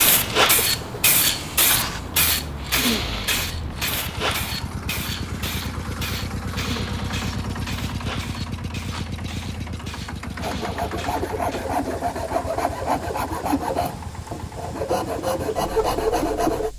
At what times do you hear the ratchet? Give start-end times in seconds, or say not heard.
not heard.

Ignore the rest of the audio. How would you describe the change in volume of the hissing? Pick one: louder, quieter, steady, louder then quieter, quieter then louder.
quieter.